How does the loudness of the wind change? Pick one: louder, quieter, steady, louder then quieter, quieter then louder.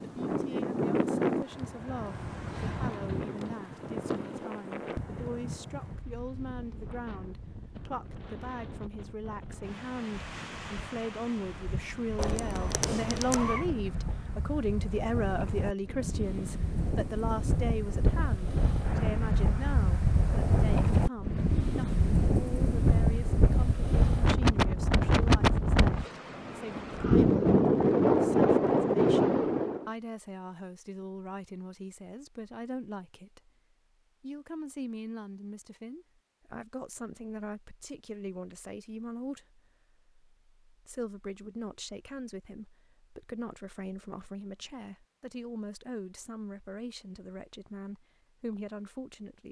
quieter then louder.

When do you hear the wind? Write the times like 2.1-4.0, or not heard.
0.0-29.9.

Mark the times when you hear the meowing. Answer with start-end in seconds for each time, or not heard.
12.2-13.7.